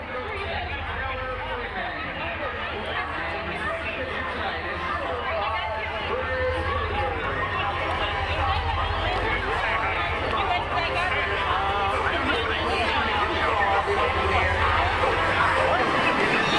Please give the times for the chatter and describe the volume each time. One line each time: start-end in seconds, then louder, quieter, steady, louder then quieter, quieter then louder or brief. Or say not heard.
0.0-16.5 louder.